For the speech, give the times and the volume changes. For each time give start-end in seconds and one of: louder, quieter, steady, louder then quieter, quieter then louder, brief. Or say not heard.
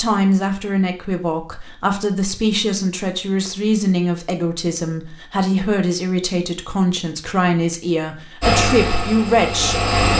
0.0-9.8 steady.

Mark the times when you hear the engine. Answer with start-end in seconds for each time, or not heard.
8.4-10.1.